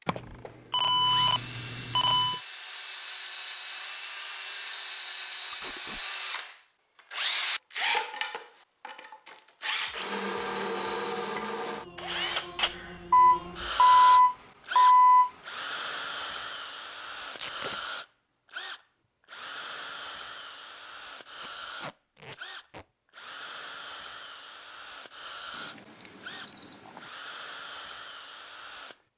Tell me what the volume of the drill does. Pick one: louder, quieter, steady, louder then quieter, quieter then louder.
quieter.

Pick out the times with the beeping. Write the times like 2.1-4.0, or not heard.
0.1-2.4, 13.1-15.3, 25.5-27.0.